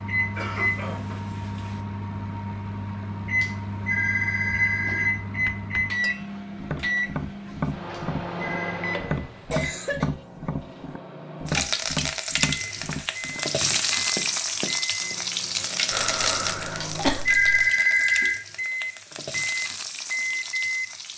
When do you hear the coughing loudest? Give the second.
17 s.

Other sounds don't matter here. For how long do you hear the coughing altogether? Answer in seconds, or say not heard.
4 s.